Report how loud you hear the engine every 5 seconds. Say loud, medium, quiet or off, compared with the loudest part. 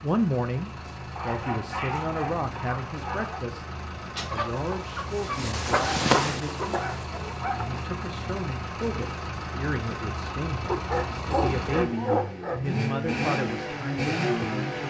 medium, medium, loud.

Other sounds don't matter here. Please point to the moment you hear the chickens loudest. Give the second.
6 s.